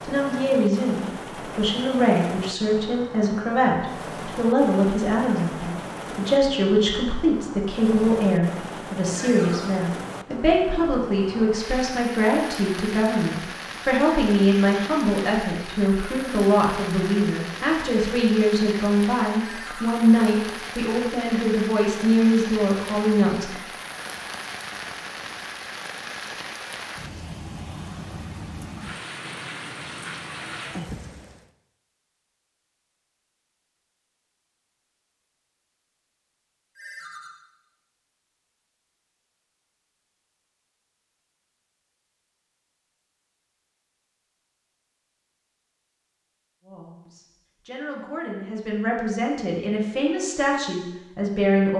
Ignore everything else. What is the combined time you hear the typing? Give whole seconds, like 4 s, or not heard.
not heard.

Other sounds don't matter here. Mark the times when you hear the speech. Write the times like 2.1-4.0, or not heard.
0.0-23.6, 46.6-51.7.